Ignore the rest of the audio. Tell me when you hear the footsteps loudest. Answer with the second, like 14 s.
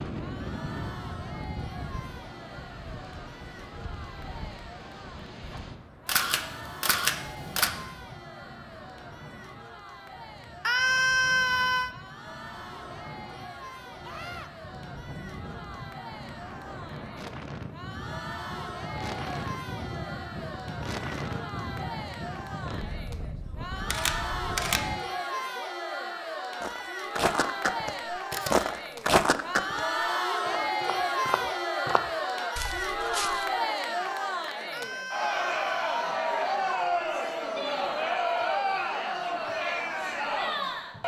29 s.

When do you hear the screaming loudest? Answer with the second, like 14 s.
11 s.